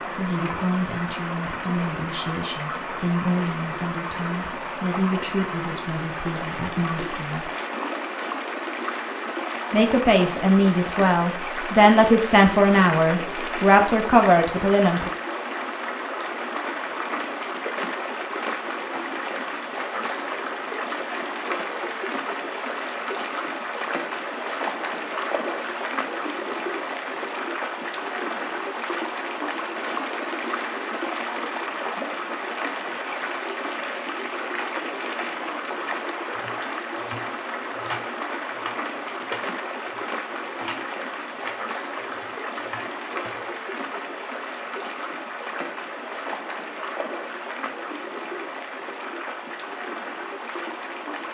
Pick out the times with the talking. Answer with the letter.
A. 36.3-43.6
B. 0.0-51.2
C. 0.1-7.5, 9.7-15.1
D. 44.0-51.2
C.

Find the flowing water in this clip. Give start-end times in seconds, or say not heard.
0.0-51.2.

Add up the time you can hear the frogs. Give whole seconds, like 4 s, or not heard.
not heard.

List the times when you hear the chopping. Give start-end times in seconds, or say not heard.
36.3-43.6.